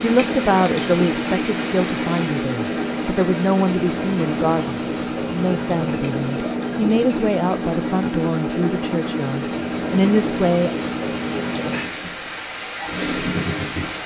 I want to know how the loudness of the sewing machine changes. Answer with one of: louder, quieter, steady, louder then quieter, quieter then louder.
steady.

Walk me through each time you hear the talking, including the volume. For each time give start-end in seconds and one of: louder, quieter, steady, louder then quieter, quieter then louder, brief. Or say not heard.
0.0-10.7 steady.